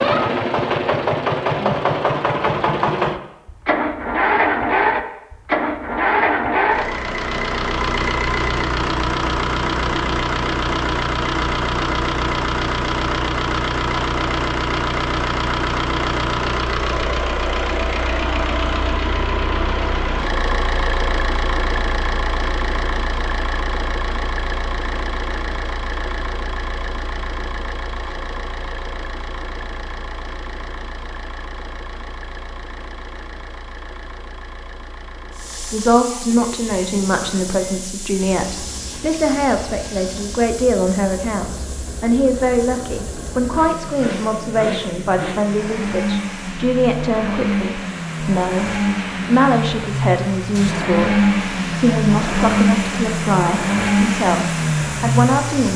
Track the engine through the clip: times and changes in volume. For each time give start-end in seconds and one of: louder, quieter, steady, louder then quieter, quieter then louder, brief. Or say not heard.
0.0-55.7 quieter then louder.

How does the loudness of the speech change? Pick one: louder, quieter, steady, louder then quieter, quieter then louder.
steady.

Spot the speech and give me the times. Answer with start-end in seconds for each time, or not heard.
35.5-55.7.